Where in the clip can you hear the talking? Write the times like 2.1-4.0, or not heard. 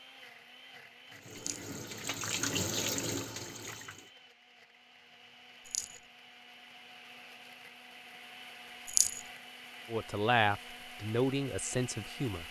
9.9-12.4.